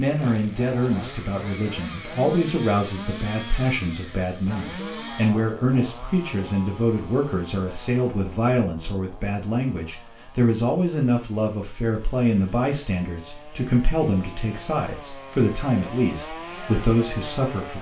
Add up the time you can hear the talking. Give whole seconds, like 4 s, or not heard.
18 s.